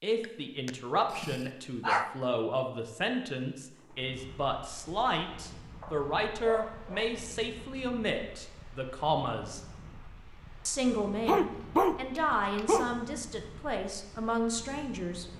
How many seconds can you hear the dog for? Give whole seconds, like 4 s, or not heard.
5 s.